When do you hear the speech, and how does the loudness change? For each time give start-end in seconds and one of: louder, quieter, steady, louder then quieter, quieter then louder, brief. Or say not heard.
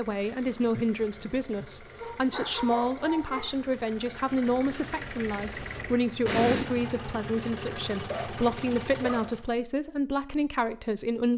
0.0-11.3 steady.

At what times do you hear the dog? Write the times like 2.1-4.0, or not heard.
1.9-3.5, 8.1-9.2.